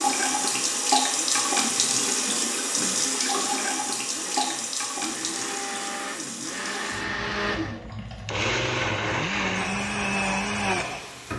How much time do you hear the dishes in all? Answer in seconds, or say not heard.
not heard.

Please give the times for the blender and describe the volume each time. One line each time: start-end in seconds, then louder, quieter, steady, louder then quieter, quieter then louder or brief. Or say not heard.
0.0-11.2 louder.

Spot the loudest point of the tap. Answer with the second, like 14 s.
1 s.